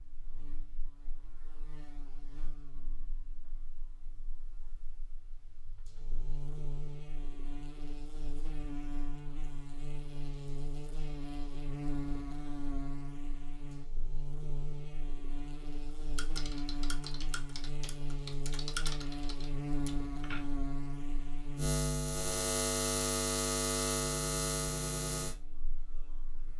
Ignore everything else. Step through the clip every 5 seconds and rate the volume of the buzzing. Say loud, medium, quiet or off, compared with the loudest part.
quiet, quiet, medium, medium, loud, medium.